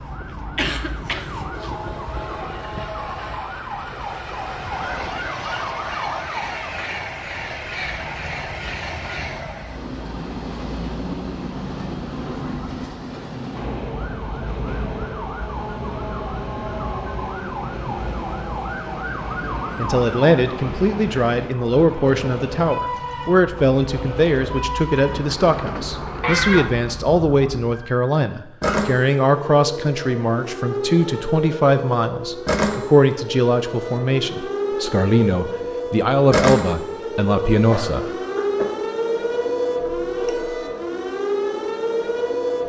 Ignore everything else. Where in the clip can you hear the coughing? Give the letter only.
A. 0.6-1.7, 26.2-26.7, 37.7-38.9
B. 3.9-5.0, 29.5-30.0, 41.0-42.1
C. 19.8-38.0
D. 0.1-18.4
A.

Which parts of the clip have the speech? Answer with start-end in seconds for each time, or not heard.
19.8-38.0.